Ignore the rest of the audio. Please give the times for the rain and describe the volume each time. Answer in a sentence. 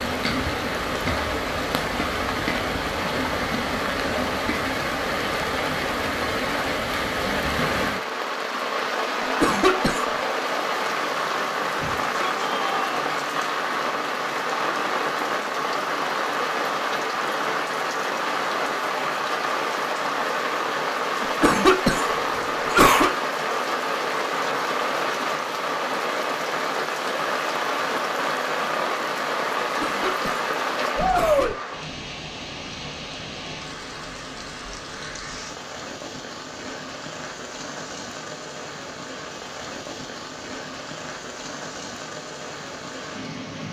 The rain can be heard from 0.0 to 43.6 s, getting quieter.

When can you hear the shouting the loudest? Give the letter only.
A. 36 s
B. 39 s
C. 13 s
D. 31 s
D.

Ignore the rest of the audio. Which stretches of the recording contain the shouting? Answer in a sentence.
The shouting can be heard from 11.8 to 12.8 s and from 30.9 to 31.6 s.